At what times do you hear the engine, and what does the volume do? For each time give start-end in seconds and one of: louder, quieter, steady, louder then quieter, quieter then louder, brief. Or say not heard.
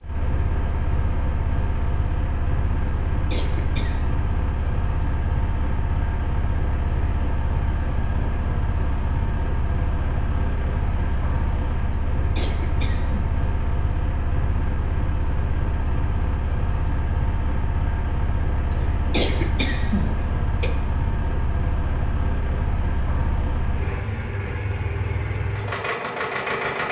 0.0-26.8 steady.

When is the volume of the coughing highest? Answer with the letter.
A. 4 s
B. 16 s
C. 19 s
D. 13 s
C.